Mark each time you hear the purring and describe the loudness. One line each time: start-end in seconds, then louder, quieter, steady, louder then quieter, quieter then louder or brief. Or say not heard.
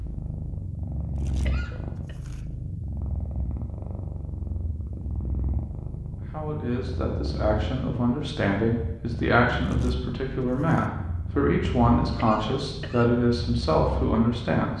0.0-14.7 steady.